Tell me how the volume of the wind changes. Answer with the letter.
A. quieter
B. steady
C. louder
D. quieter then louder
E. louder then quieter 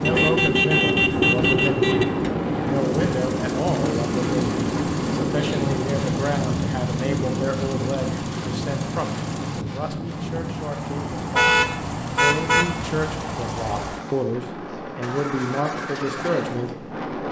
A.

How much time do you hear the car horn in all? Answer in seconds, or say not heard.
3 s.